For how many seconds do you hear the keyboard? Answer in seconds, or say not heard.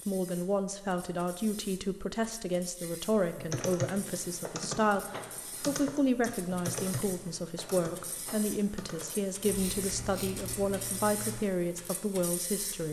8 s.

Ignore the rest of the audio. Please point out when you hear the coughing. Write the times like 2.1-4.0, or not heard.
not heard.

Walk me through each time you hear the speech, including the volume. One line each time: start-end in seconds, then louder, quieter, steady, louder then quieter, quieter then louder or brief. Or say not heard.
0.1-12.8 steady.